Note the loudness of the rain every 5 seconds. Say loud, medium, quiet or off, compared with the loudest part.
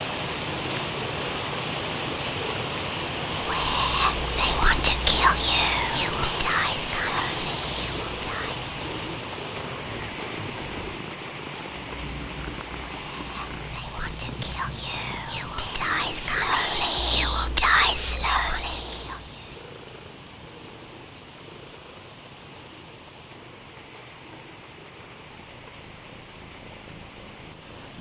loud, loud, medium, quiet, quiet, quiet.